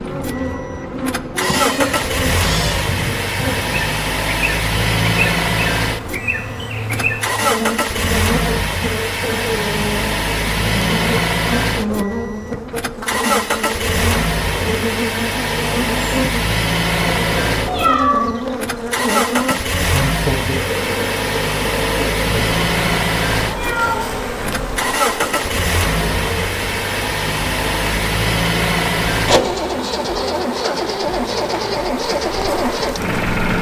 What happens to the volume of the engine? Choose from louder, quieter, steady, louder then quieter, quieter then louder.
steady.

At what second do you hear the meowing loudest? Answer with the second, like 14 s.
18 s.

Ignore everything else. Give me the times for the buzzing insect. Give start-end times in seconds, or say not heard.
0.0-33.5.